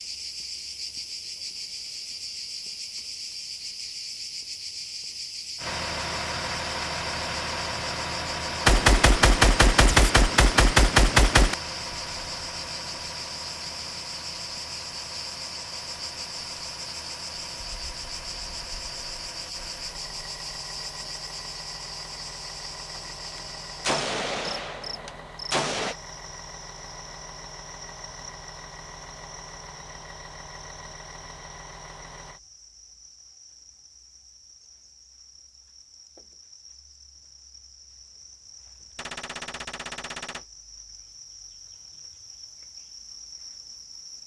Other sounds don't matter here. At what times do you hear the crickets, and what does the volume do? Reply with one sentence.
You can hear the crickets from 0.0 to 44.2 s, getting quieter.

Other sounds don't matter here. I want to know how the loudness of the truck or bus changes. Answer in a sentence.
The volume of the truck or bus goes down.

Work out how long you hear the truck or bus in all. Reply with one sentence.
The truck or bus can be heard for 27 seconds in total.